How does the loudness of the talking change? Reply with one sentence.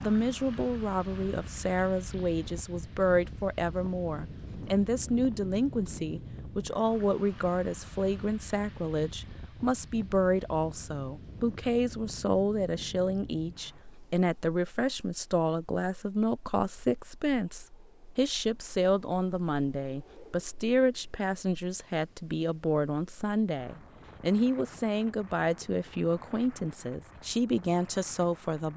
The loudness of the talking stays about the same.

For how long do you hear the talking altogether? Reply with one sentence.
You can hear the talking for 29 seconds altogether.